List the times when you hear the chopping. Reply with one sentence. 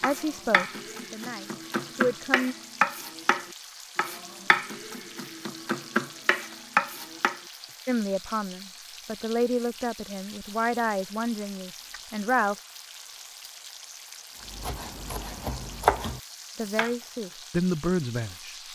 The chopping can be heard from 0.0 to 7.4 s and from 14.4 to 16.9 s.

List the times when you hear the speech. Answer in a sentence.
You can hear the speech from 0.0 to 2.5 s, from 7.8 to 12.6 s and from 16.6 to 18.6 s.